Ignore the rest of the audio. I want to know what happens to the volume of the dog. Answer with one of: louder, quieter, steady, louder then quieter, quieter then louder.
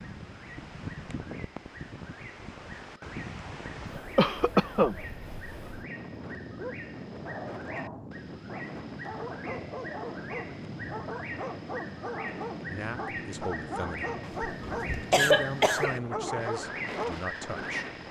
louder.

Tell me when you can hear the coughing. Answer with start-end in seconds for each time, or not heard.
4.2-5.0, 14.2-15.9.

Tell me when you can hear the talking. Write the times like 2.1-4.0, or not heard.
12.7-14.2, 15.0-18.0.